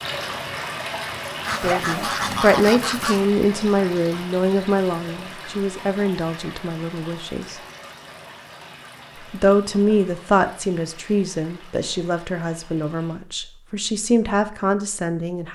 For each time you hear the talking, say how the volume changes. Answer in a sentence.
The talking can be heard from 1.6 to 7.5 s, getting quieter; and from 9.3 to 15.5 s, getting quieter then louder.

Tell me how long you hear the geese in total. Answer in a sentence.
You can hear the geese for 2 seconds altogether.